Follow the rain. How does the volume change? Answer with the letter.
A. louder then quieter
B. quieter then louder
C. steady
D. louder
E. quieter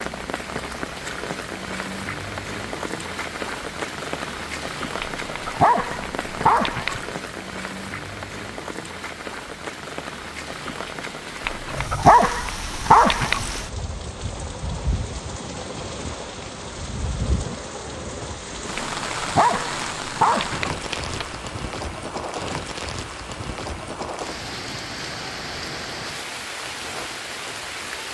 C.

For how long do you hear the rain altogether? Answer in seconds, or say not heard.
28 s.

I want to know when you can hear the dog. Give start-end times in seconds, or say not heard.
5.0-7.2, 11.4-13.6, 18.8-21.4.